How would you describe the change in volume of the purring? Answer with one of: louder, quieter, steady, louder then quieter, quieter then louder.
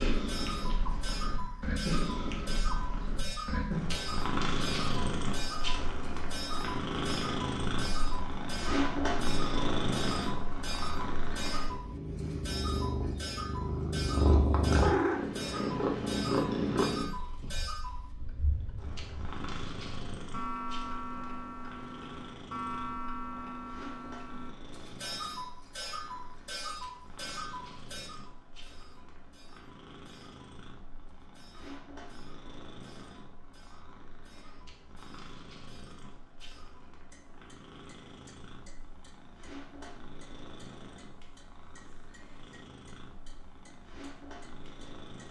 quieter.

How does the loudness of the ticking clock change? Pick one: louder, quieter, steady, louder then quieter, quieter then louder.
quieter.